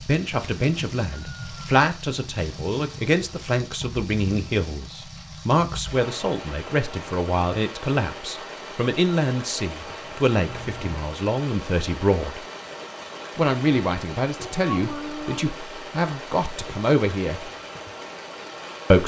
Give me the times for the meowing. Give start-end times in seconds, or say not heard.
1.1-1.8, 10.4-10.9, 14.3-15.4.